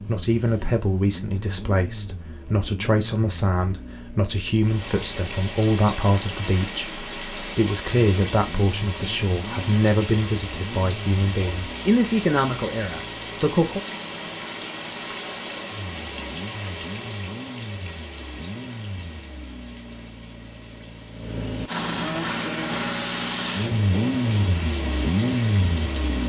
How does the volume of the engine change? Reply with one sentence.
The loudness of the engine goes up.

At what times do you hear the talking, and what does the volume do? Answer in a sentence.
The talking can be heard from 0.1 to 13.8 s, at a steady volume.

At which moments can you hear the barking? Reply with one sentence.
You can't hear the barking here.